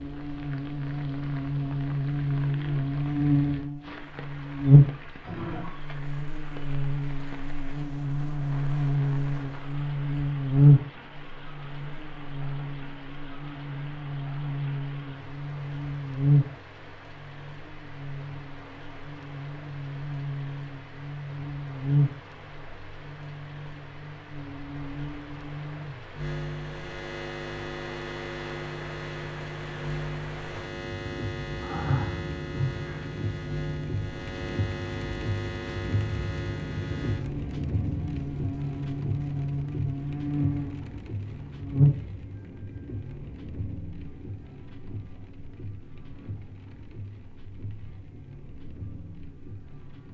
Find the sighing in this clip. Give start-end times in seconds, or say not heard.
5.2-5.8, 31.6-33.1.